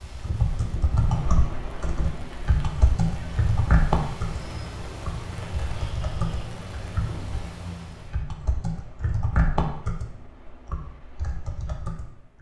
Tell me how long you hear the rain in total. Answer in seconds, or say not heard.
8 s.